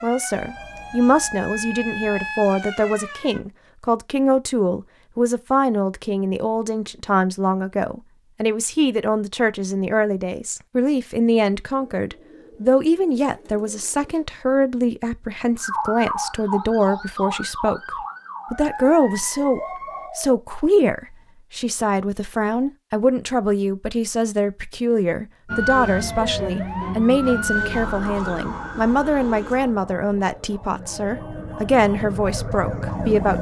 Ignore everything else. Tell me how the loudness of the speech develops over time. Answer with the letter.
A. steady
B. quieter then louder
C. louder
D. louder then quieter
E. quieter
A.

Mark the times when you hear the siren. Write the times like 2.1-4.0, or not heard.
0.0-3.4, 15.6-20.1, 25.4-33.3.